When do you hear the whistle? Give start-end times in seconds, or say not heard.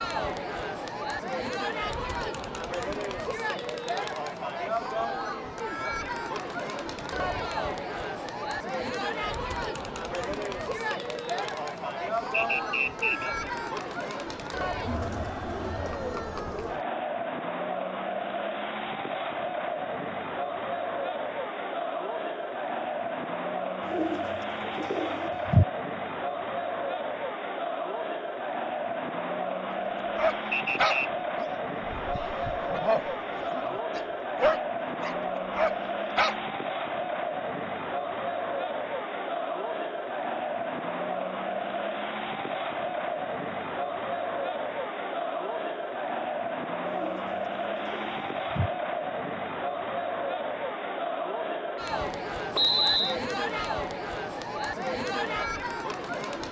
12.3-13.3, 30.5-31.1, 52.5-53.2.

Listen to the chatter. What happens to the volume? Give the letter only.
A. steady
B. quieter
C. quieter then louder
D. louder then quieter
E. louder
A.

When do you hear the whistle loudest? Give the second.
53 s.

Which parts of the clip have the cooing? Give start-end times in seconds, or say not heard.
23.9-25.6, 46.9-48.7.